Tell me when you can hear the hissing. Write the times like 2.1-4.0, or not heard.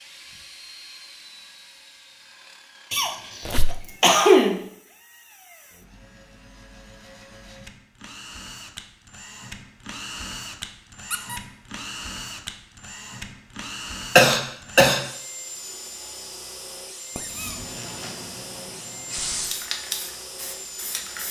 17.2-21.2.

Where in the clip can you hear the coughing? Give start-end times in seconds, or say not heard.
2.9-4.6, 14.2-15.0.